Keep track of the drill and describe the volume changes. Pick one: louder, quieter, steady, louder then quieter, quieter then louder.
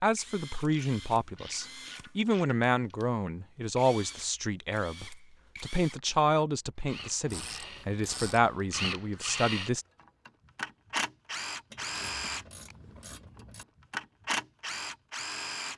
louder.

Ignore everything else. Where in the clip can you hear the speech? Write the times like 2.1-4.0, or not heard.
0.0-9.8.